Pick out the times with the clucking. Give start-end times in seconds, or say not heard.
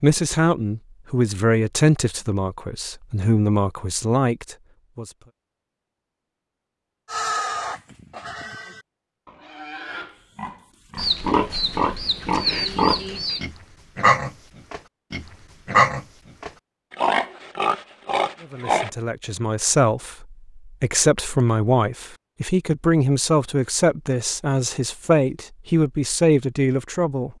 10.9-13.4.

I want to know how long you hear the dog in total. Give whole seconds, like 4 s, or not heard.
not heard.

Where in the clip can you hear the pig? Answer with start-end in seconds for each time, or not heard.
7.1-18.9.